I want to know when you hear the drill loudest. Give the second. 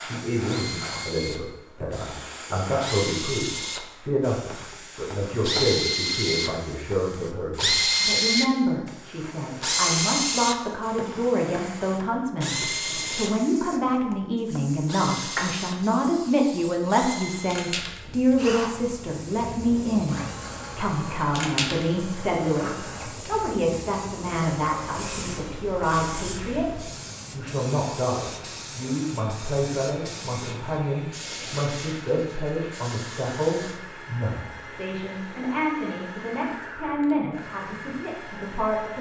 8 s.